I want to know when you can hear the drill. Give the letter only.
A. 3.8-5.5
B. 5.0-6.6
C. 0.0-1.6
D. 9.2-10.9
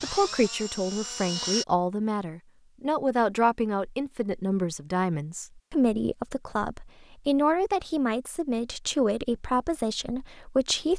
C.